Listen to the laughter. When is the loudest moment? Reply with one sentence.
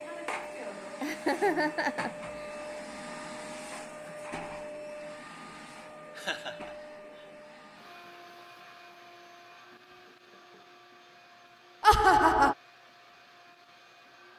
The loudest moment of the laughter is at 12 seconds.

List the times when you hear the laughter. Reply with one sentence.
The laughter can be heard from 1.0 to 2.5 s, from 6.2 to 6.6 s and from 11.8 to 12.6 s.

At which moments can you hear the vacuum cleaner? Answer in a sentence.
The vacuum cleaner can be heard from 0.0 to 14.3 s.